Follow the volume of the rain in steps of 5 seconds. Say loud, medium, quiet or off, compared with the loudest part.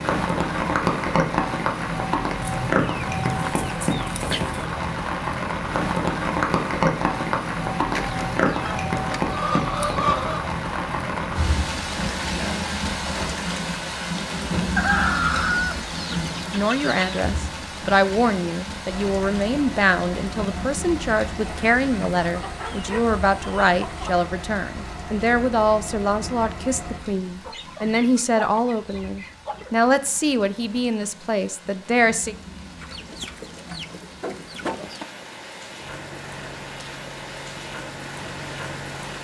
loud, loud, loud, medium, quiet, quiet, quiet, quiet.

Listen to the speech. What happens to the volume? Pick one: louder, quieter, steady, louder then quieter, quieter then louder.
steady.